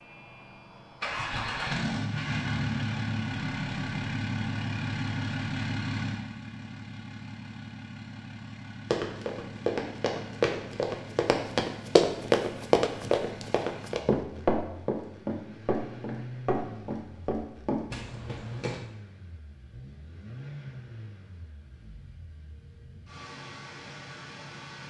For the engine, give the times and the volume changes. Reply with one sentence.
You can hear the engine from 0.0 to 24.8 s, getting quieter.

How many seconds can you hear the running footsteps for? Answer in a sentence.
The running footsteps can be heard for 10 seconds in total.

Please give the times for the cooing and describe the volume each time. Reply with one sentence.
You can't hear the cooing here.